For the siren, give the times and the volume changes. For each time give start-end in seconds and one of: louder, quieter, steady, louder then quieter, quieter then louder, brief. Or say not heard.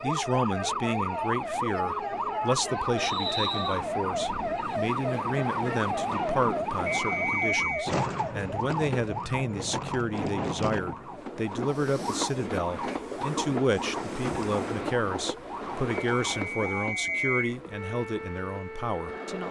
0.0-19.4 quieter.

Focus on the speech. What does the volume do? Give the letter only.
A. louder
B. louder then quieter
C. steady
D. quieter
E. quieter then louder
C.